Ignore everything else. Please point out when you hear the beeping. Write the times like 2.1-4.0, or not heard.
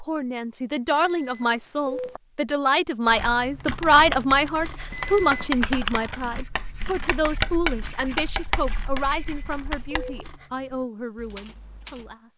0.9-2.2, 4.9-5.5, 9.0-10.2.